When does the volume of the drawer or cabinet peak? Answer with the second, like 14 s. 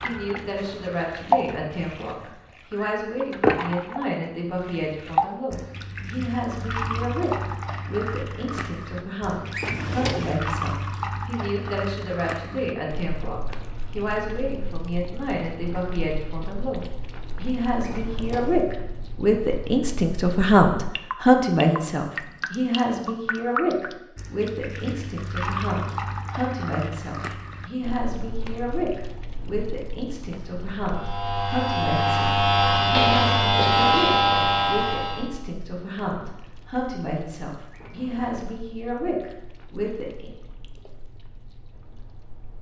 10 s.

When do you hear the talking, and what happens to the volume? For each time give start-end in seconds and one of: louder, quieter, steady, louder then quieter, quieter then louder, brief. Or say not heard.
0.0-40.3 louder then quieter.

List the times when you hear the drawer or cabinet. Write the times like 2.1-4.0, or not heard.
9.5-10.4, 17.8-18.6, 37.7-38.5.